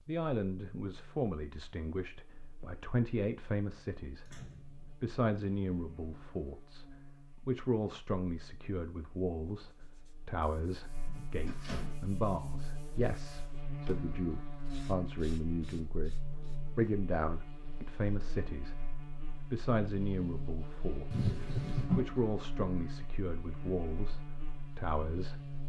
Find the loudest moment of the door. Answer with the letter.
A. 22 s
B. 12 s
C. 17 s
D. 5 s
A.